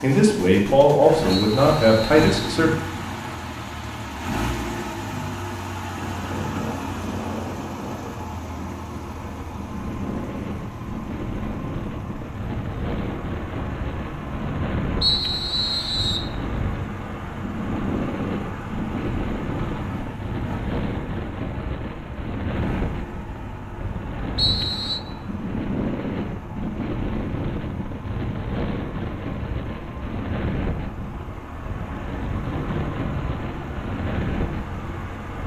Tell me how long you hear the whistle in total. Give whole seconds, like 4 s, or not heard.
3 s.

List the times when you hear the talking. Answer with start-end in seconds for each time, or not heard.
0.0-2.7.